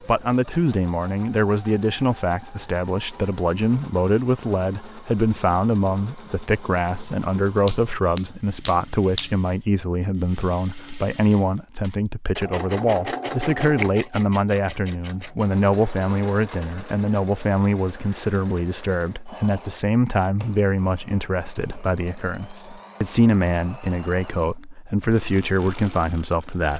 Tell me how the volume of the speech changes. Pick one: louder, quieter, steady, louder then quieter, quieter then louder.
steady.